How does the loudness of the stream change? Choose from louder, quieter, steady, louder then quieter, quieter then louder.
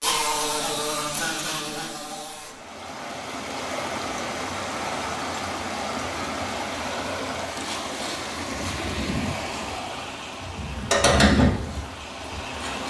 quieter.